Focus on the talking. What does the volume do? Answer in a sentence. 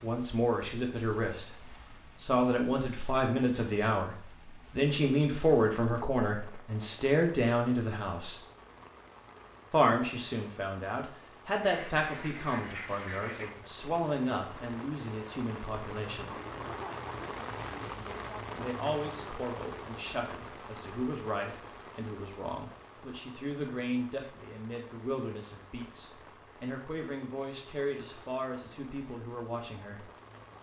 The loudness of the talking goes down.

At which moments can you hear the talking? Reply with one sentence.
The talking can be heard from 0.0 to 8.4 s, from 9.7 to 16.4 s and from 18.6 to 30.1 s.